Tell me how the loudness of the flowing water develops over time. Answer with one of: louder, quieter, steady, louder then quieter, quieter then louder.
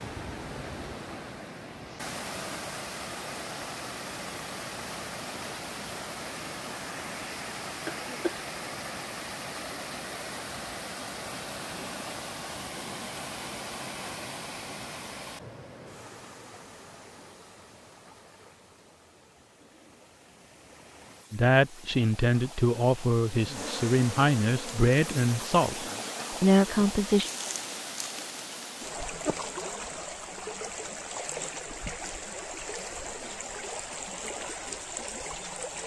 quieter then louder.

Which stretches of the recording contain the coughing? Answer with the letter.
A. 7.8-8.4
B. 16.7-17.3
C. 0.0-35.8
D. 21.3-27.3
A.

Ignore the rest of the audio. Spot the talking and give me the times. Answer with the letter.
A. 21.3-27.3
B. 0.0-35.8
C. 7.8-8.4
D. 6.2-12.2
A.